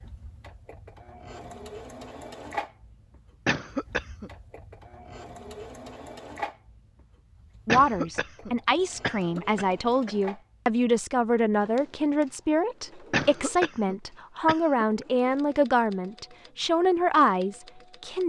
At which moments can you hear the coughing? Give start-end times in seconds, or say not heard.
3.5-4.3, 7.7-10.2, 13.1-14.8.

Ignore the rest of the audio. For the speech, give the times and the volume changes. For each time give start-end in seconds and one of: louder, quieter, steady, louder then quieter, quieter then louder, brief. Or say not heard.
7.7-18.2 steady.